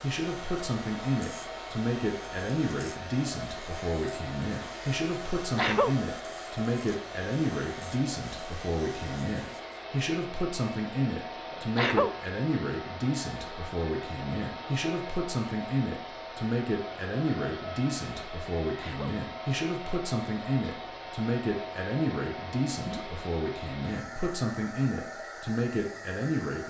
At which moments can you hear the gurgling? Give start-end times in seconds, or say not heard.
22.7-23.2.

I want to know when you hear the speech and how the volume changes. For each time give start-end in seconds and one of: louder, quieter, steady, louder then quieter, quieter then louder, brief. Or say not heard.
0.0-26.6 steady.